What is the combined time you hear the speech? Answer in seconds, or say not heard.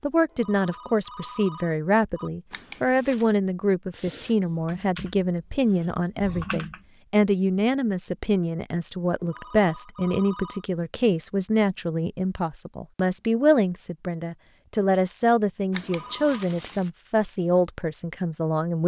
19 s.